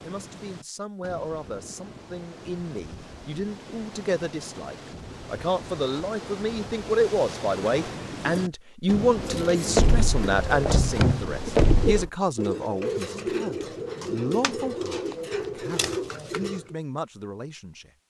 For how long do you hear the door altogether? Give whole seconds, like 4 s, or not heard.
2 s.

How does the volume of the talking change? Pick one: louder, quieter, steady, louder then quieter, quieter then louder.
louder then quieter.